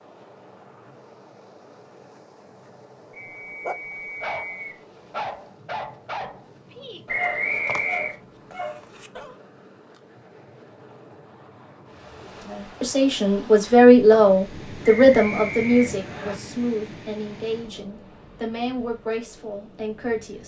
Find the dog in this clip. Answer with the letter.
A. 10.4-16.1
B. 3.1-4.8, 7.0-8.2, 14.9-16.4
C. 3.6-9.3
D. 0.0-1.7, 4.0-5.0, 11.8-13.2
C.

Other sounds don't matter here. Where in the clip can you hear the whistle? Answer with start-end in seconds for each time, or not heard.
3.1-4.8, 7.0-8.2, 14.9-16.4.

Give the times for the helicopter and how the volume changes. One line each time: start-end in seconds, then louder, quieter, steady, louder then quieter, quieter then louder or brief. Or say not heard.
not heard.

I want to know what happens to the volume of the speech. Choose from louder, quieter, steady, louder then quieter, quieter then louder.
quieter.